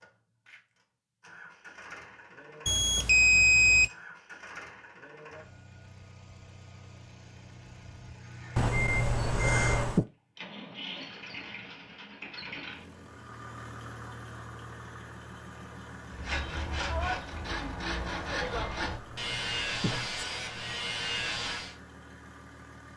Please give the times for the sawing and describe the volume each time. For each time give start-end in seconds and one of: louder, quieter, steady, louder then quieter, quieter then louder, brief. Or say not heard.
16.1-21.8 steady.